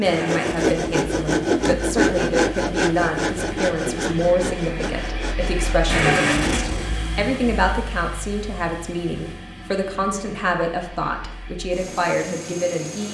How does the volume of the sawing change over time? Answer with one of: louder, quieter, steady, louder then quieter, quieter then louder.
quieter.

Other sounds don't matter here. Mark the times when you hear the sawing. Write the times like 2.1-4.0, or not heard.
0.0-6.7.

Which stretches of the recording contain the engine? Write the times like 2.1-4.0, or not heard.
0.0-13.0.